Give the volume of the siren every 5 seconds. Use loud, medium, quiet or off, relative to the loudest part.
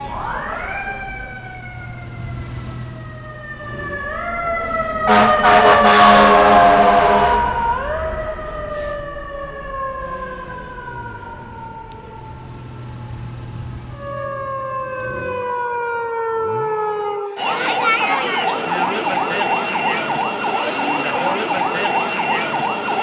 quiet, loud, quiet, medium, medium.